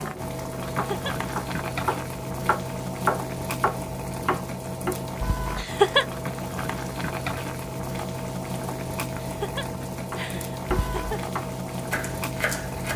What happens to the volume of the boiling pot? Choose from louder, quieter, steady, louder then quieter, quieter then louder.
steady.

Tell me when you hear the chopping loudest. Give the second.
3 s.